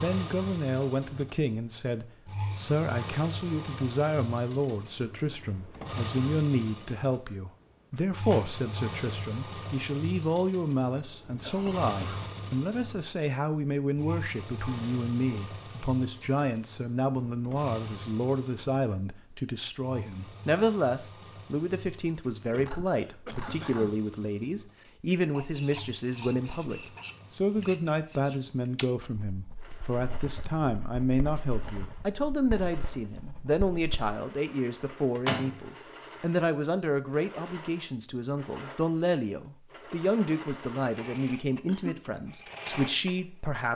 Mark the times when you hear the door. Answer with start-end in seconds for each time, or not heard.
7.9-8.6, 34.9-35.6.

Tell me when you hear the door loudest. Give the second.
35 s.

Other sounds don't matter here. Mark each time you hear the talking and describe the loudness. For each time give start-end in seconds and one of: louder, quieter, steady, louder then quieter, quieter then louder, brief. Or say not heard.
0.0-43.7 steady.